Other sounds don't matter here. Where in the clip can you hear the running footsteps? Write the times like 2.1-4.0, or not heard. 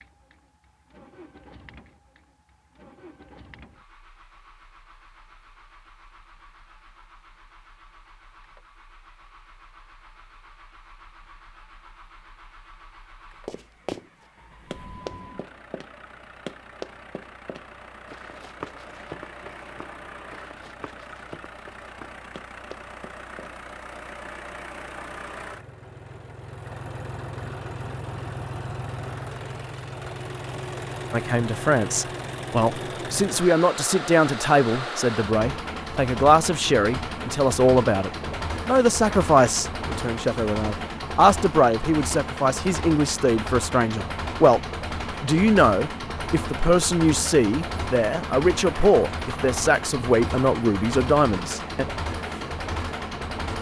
13.4-14.1, 14.7-23.6.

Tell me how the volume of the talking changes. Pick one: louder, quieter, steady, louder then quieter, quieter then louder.
steady.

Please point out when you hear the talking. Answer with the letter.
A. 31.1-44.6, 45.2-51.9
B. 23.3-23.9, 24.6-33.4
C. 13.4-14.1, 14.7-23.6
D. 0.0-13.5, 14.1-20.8
A.